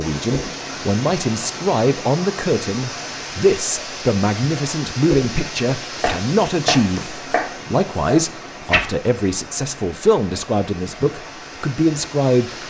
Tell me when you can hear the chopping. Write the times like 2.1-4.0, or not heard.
6.0-8.7.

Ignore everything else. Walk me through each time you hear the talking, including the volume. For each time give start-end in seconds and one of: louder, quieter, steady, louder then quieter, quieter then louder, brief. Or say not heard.
0.0-12.6 steady.